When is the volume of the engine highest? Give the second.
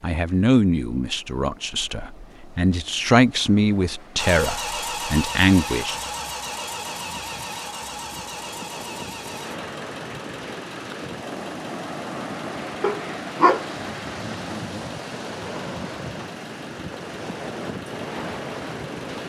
5 s.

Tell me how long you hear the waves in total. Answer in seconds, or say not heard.
19 s.